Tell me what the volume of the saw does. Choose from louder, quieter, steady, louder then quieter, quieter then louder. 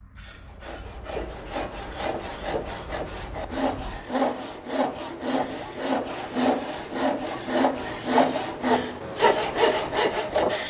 louder.